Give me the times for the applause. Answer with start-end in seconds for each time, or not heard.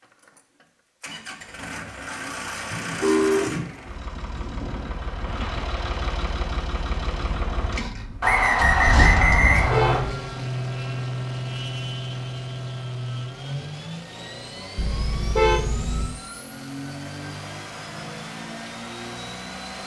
not heard.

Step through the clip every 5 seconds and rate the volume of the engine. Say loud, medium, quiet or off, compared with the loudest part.
medium, loud, loud, medium.